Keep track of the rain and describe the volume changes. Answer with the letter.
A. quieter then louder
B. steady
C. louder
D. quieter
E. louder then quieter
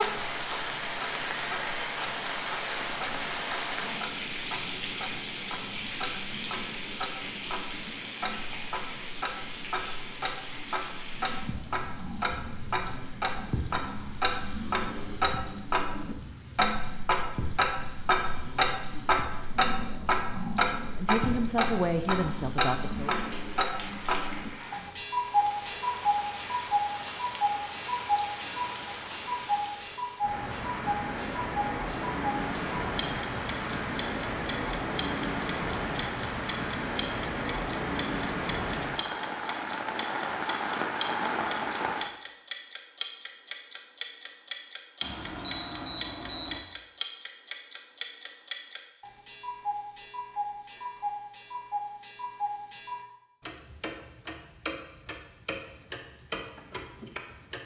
A.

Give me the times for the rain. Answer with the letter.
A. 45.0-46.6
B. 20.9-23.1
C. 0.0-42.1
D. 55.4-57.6
C.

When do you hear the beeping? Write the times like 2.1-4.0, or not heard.
45.0-46.6.